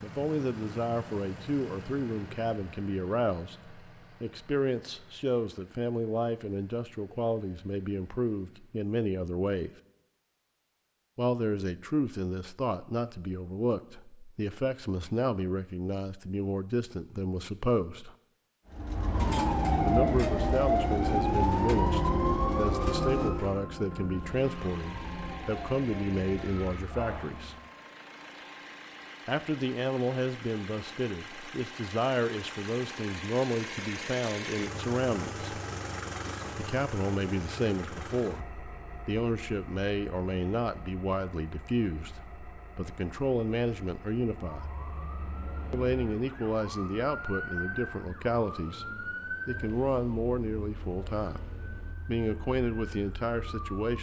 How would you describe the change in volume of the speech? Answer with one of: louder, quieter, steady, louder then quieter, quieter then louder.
steady.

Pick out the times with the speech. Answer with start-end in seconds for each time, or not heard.
0.0-9.7, 11.2-18.1, 19.9-27.6, 29.2-35.5, 36.5-44.8, 45.7-53.9.